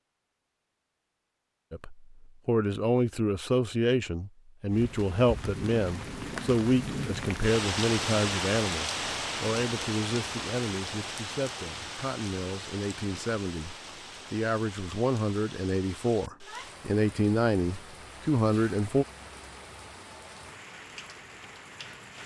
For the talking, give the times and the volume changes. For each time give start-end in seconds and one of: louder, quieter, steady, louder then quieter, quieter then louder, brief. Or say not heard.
1.7-19.1 quieter then louder.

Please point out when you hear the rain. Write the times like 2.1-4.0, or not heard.
4.7-22.2.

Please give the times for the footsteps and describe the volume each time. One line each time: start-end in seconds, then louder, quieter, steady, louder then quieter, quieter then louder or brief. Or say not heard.
not heard.